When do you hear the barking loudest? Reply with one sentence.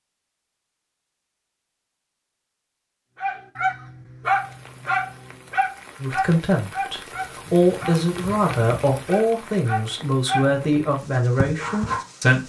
The volume of the barking peaks at 4 seconds.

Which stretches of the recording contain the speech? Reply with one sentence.
You can hear the speech from 6.0 to 12.4 s.